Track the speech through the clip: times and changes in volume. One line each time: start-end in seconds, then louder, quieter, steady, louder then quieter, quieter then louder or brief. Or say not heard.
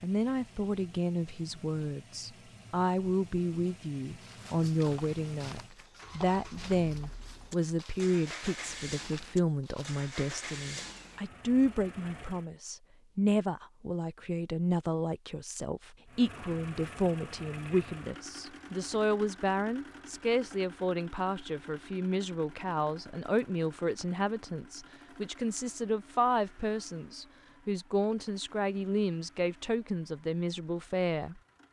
0.0-31.4 steady.